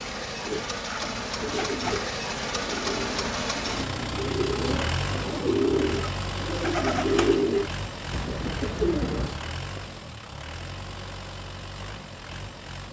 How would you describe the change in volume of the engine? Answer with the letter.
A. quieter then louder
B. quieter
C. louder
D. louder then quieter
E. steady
B.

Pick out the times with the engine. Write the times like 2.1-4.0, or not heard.
0.0-12.8.